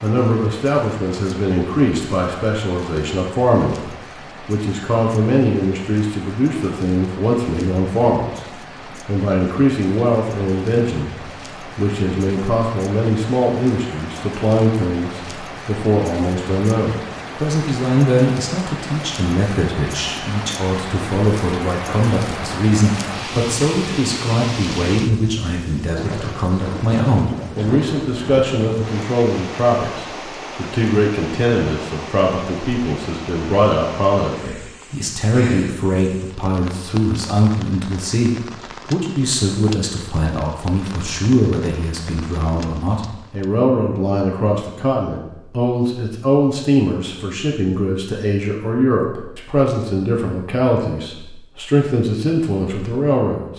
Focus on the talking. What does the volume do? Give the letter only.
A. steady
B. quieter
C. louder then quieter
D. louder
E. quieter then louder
A.